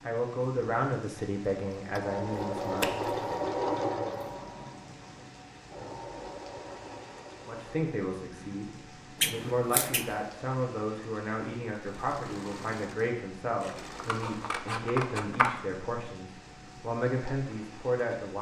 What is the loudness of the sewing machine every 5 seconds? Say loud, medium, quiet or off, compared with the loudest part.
loud, quiet, quiet, off.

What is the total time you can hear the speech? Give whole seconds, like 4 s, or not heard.
14 s.